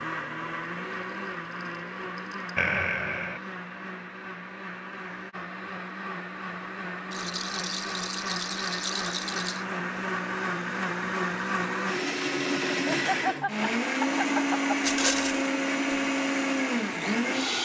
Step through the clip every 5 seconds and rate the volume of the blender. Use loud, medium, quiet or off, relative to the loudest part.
medium, medium, loud, loud.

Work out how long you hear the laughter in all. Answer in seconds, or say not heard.
3 s.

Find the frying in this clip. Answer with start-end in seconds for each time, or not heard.
not heard.